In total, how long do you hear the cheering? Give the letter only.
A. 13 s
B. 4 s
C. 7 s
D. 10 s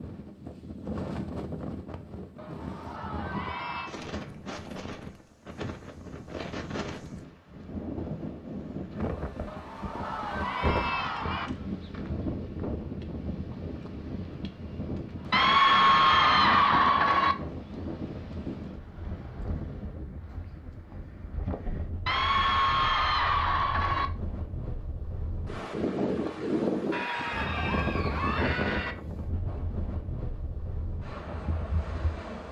D.